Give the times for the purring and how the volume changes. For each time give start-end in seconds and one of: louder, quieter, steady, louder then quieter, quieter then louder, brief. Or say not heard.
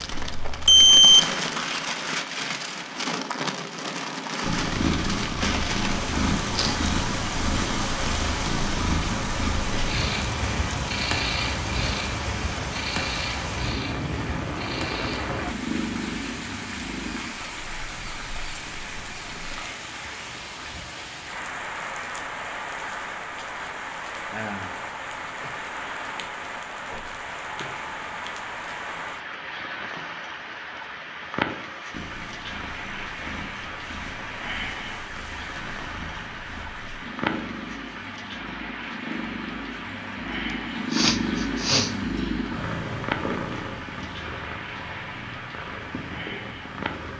4.4-19.6 quieter
31.9-47.1 louder then quieter.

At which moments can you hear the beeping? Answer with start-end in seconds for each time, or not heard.
0.1-1.2.